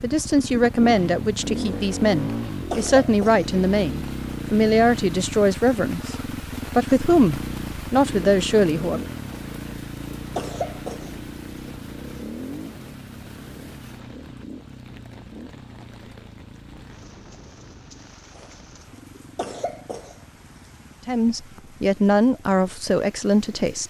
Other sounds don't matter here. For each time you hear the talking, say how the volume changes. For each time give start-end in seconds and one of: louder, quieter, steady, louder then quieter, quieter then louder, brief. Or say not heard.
0.0-9.0 steady
21.1-23.8 brief.